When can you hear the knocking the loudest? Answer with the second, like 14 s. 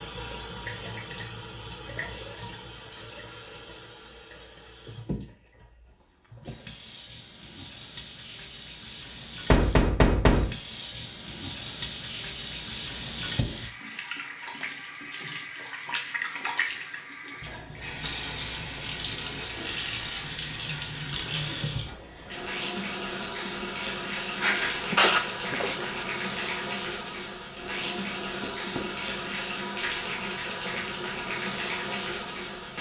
10 s.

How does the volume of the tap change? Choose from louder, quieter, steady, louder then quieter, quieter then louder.
louder.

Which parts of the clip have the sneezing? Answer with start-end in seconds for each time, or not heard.
24.4-26.1.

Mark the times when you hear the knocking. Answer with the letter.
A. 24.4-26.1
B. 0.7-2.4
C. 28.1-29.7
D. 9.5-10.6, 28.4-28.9
D.